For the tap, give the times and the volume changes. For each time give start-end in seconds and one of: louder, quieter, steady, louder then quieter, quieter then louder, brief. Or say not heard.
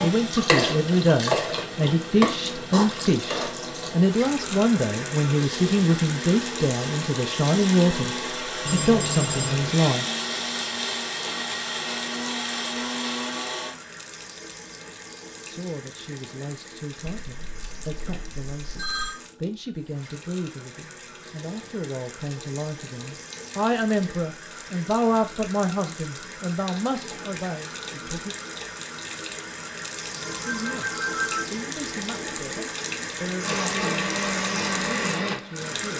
0.0-35.9 quieter then louder.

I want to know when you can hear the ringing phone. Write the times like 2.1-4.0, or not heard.
8.7-9.7, 17.1-19.1, 30.1-31.5.